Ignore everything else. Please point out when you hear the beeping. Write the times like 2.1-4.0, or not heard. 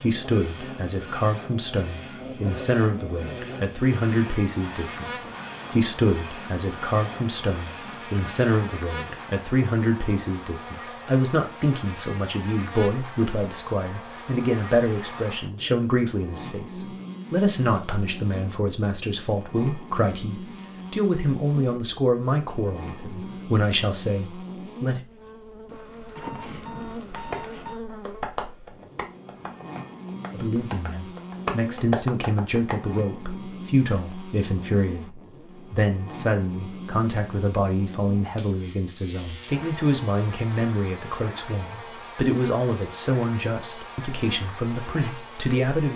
25.6-27.8.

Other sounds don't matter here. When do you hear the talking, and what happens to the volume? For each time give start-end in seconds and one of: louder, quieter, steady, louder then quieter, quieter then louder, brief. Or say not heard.
0.0-25.1 steady
30.3-45.9 steady.